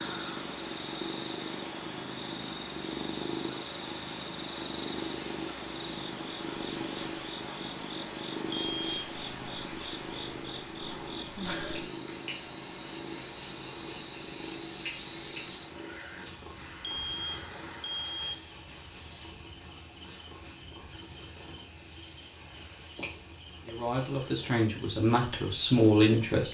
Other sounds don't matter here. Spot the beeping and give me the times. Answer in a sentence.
You can hear the beeping from 8.5 to 8.9 s and from 16.8 to 18.5 s.